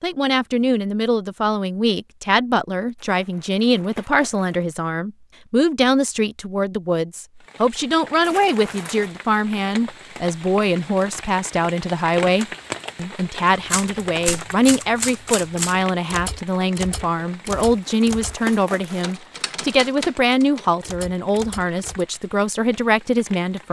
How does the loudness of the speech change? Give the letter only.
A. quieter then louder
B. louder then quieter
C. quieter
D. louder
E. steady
E.